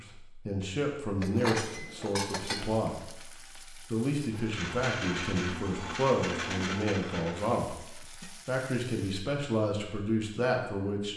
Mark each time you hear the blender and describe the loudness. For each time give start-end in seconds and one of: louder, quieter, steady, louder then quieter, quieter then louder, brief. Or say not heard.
4.2-8.3 quieter.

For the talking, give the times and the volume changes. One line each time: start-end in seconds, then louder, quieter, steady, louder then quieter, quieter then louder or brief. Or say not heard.
0.0-11.1 steady.